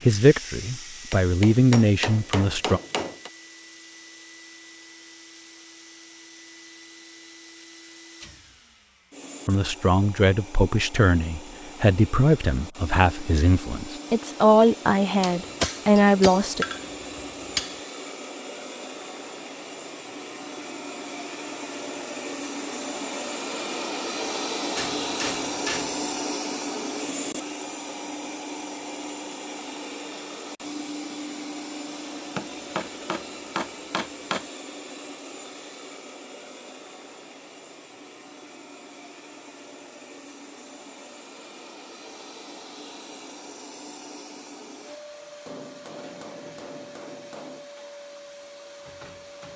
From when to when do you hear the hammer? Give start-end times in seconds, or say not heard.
1.1-3.3, 15.2-17.8, 24.8-26.0, 32.4-34.5, 45.5-47.8.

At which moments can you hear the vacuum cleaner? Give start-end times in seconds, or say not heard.
0.0-49.5.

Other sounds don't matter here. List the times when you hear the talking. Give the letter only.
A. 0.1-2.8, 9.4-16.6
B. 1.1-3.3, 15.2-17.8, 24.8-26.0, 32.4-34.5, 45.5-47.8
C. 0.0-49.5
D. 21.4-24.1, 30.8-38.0
A.